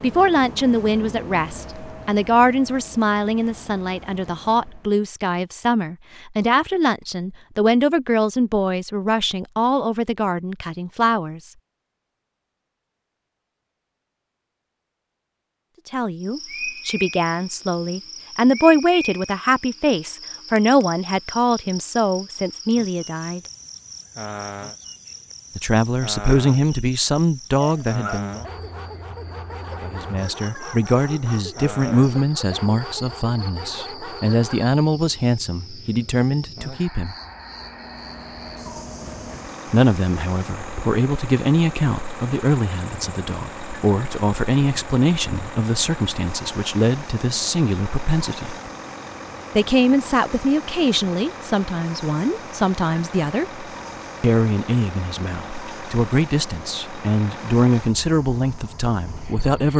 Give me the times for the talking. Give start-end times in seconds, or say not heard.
0.0-11.5, 15.8-23.4, 25.6-28.4, 29.8-37.1, 39.7-48.5, 49.5-59.7.